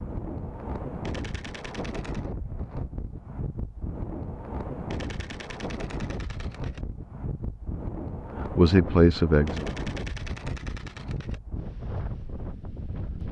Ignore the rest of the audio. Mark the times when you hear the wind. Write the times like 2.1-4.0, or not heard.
0.0-13.2.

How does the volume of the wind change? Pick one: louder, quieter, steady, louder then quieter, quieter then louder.
steady.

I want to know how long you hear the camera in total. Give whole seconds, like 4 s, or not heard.
5 s.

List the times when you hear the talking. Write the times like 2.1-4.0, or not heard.
8.6-9.8.